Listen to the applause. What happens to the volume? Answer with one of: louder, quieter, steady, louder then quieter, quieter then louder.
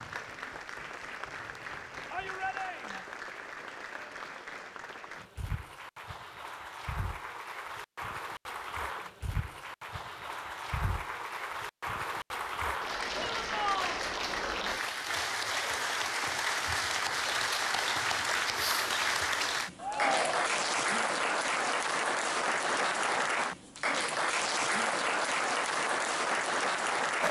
louder.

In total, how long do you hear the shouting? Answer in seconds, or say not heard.
3 s.